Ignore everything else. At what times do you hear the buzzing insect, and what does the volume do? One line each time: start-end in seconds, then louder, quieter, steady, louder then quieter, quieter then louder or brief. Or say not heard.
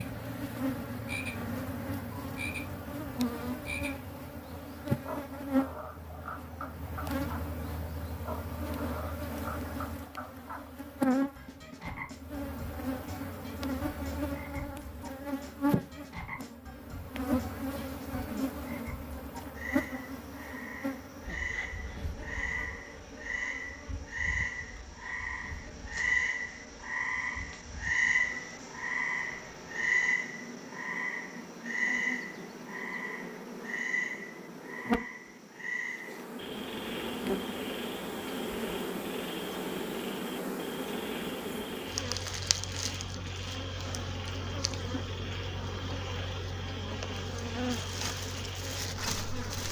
0.0-49.6 quieter then louder.